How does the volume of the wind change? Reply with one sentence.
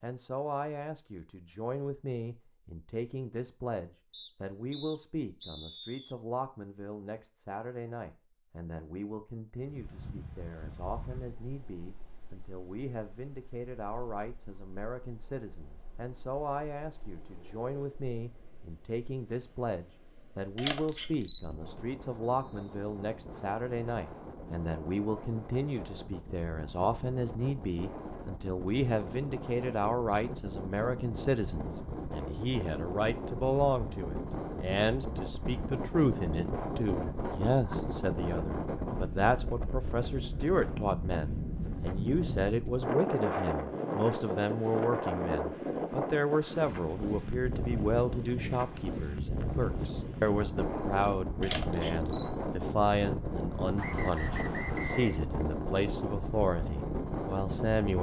The loudness of the wind goes up.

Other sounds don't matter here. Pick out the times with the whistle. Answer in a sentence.
The whistle can be heard from 4.1 to 6.2 s, from 21.1 to 22.8 s and from 53.8 to 55.2 s.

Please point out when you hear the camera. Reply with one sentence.
The camera can be heard from 20.6 to 21.7 s and from 51.4 to 52.4 s.